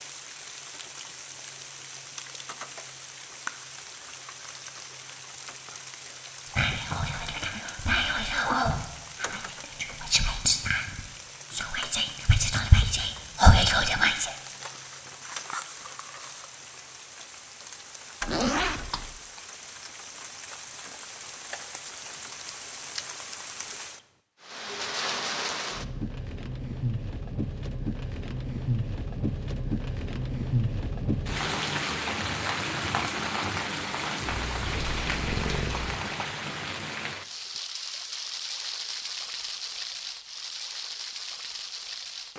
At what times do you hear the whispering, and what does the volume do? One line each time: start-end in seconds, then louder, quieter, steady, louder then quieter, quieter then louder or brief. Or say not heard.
6.5-14.3 louder.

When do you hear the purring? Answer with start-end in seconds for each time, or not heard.
34.2-36.0.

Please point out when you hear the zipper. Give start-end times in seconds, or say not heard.
18.2-19.2.